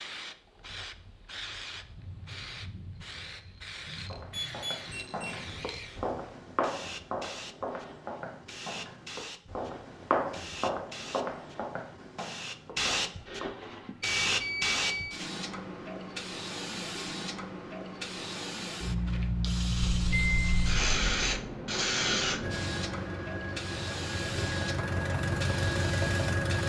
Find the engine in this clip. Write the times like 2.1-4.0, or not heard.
22.4-26.6.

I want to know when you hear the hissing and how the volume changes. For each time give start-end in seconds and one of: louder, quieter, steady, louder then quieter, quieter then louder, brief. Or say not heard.
0.0-26.6 louder.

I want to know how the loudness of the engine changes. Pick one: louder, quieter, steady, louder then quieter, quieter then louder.
louder.